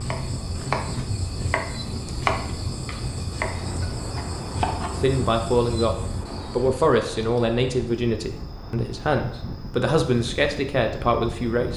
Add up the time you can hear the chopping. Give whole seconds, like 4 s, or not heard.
5 s.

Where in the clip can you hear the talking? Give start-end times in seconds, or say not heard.
5.0-11.7.